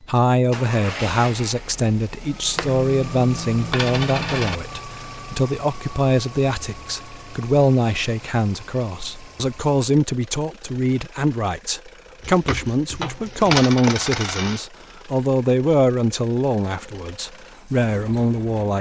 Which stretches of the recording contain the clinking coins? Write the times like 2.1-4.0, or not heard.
2.5-4.6, 12.2-14.6.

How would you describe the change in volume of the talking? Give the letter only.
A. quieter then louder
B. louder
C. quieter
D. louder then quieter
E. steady
E.